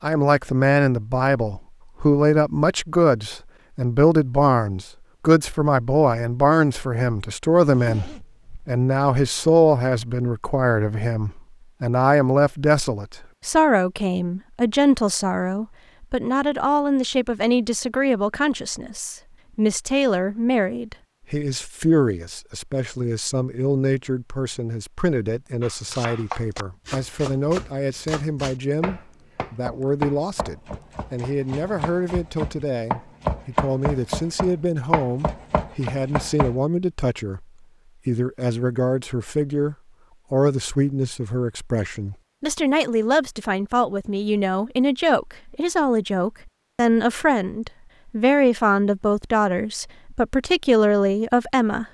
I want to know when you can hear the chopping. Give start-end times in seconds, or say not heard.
25.6-36.6.